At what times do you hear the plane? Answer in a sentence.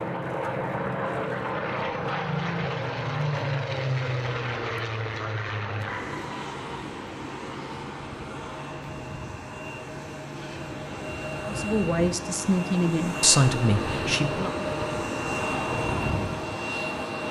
The plane can be heard from 0.0 to 17.2 s.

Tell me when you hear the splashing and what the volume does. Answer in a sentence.
The splashing can't be heard in this clip.